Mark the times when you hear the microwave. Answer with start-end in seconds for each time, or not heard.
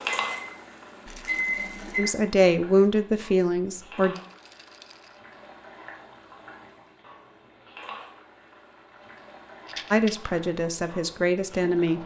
0.1-2.2.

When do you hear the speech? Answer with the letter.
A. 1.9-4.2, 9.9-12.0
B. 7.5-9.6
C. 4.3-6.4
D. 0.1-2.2
A.